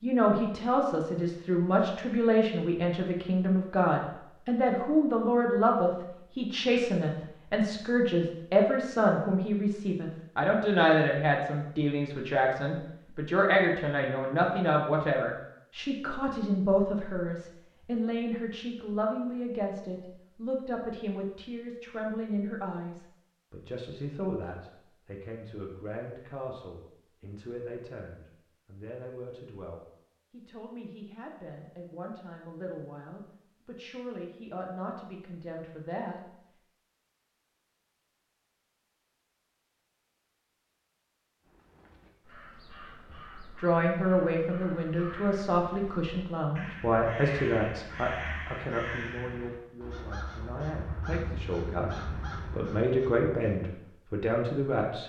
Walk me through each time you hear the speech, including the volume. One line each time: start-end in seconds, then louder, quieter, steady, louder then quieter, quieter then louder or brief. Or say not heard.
0.0-36.1 quieter
43.5-55.0 quieter then louder.